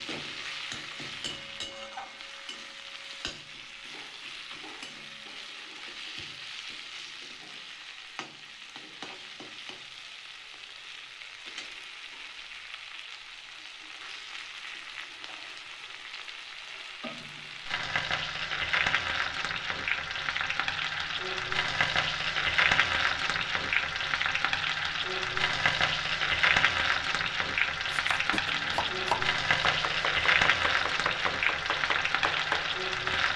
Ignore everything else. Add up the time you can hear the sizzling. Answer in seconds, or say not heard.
33 s.